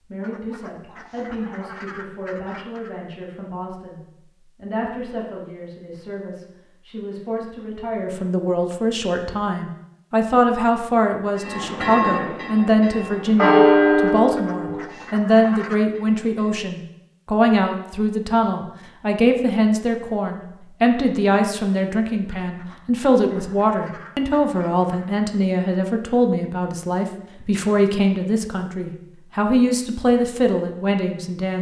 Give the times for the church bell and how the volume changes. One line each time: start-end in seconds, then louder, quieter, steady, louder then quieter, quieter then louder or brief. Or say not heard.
11.3-16.6 louder then quieter.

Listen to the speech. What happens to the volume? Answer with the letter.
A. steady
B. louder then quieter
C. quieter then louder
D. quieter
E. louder
E.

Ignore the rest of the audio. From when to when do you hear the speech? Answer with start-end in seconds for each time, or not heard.
0.1-31.5.